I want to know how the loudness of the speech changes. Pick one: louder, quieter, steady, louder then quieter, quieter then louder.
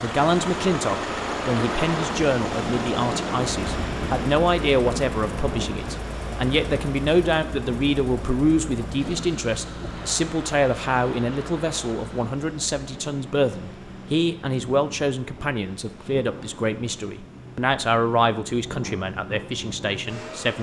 steady.